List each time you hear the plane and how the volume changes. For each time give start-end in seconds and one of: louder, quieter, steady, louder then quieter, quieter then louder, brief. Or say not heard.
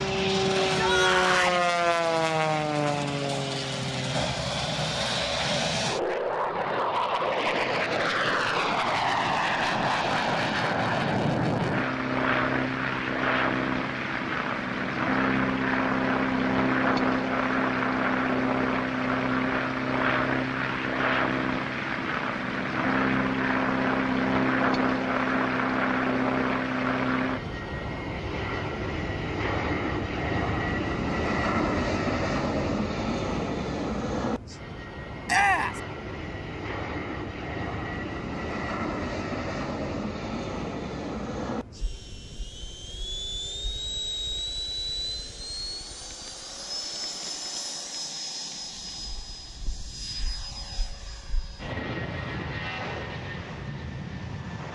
0.0-54.7 quieter.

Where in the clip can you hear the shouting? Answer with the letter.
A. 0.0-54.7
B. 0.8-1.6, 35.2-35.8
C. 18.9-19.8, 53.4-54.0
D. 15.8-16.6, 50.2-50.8
B.